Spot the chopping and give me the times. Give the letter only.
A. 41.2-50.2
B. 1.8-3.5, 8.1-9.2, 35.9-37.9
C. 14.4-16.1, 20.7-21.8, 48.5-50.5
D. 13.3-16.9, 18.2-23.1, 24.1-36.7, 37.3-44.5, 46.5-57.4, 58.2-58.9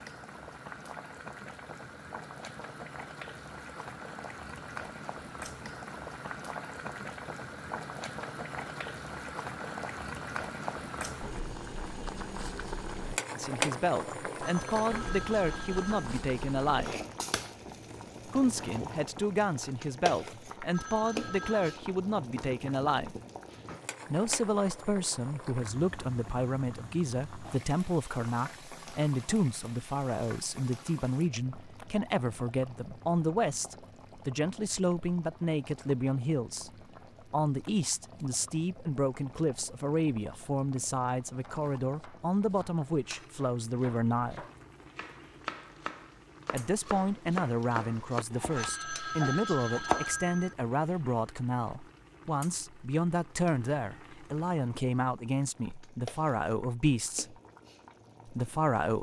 A.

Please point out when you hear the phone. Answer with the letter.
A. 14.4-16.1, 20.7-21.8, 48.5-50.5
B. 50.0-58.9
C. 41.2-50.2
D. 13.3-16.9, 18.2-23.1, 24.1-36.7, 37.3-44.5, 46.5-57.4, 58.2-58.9
A.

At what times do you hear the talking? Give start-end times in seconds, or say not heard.
13.3-16.9, 18.2-23.1, 24.1-36.7, 37.3-44.5, 46.5-57.4, 58.2-58.9.